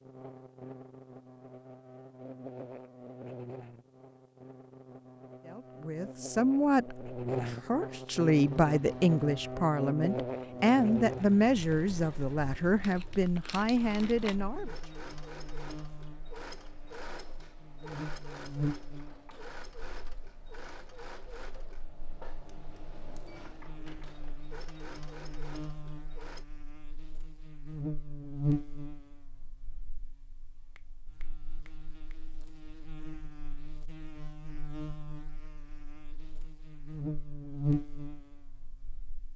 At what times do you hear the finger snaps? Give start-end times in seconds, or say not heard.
30.8-32.1.